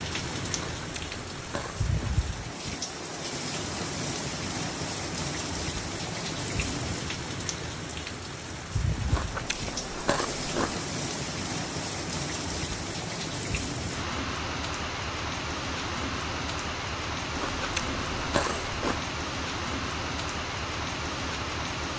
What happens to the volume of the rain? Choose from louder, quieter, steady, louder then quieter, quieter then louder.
steady.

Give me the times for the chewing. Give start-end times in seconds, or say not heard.
0.5-1.9, 9.1-10.8, 17.4-19.1.